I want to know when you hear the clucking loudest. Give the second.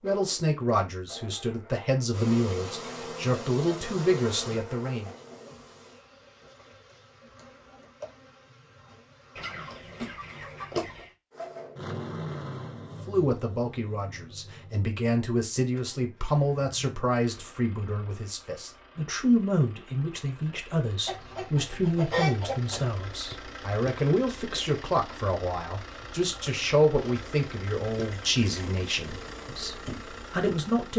22 s.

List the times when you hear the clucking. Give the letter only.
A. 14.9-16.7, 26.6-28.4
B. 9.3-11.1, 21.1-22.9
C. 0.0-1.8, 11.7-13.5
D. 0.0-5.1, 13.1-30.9
B.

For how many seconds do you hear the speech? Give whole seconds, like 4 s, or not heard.
23 s.